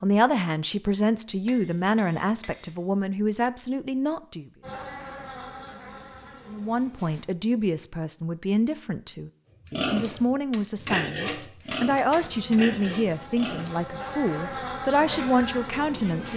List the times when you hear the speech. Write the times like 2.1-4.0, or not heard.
0.0-4.5, 6.5-16.3.